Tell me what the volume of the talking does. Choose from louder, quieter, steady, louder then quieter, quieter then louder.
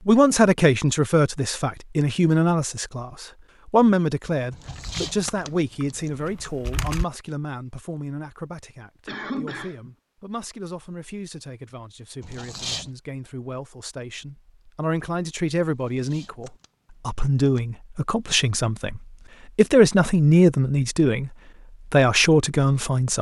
quieter then louder.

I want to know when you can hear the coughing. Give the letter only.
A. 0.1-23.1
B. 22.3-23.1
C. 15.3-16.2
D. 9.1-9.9
D.